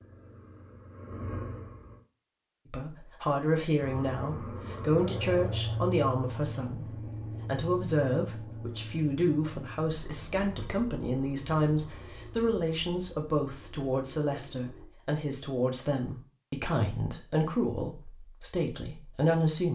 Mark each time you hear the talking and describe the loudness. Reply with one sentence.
The talking can be heard from 2.7 to 19.7 s, at a steady volume.